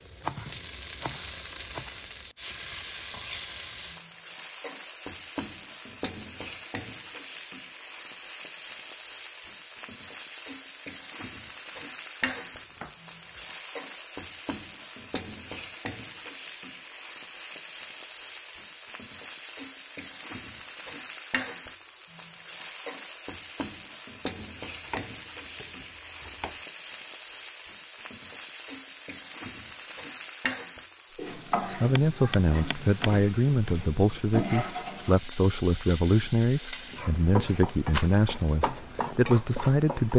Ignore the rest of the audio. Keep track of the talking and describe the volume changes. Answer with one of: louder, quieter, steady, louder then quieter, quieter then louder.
steady.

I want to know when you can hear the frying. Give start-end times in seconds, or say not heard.
0.0-40.1.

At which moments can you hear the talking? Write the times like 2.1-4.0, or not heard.
31.8-40.1.